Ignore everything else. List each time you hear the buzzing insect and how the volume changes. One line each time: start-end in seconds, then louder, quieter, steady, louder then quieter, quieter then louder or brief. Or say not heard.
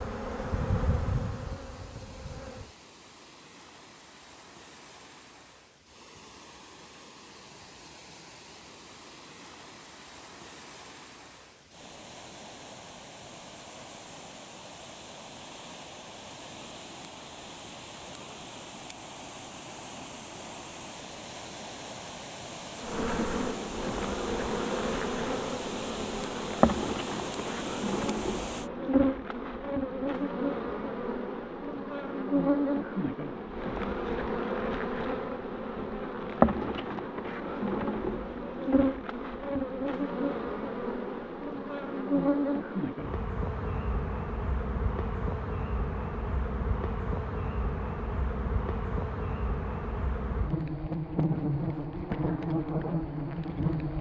0.0-2.7 brief
22.8-53.9 steady.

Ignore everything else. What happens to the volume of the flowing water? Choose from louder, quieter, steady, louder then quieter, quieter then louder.
louder.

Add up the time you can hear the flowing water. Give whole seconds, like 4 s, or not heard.
29 s.